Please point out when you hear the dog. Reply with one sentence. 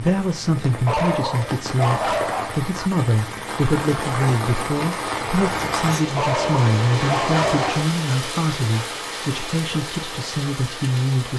You can hear the dog from 0.8 to 2.6 s and from 6.2 to 7.9 s.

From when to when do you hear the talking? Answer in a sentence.
The talking can be heard from 0.0 to 11.3 s.